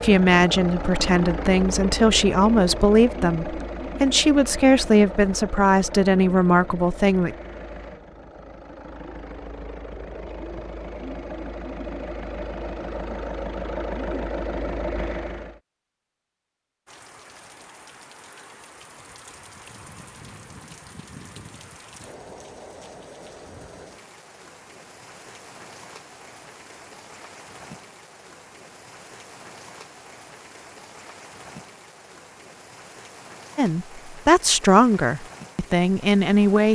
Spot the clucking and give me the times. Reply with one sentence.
The clucking can't be heard in this clip.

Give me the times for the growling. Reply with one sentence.
You can't hear the growling here.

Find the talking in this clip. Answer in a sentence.
You can hear the talking from 0.0 to 7.3 s and from 33.5 to 36.7 s.